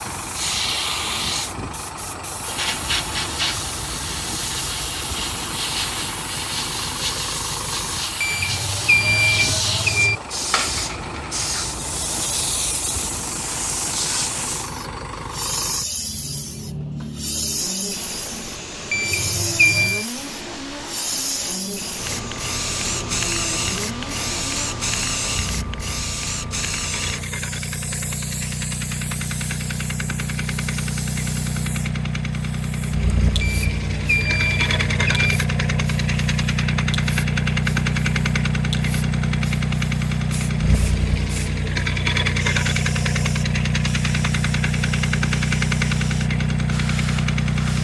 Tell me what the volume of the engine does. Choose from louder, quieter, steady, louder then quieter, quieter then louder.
louder.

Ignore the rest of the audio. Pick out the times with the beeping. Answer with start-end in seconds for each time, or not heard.
8.2-10.2, 18.9-20.1, 33.4-35.4.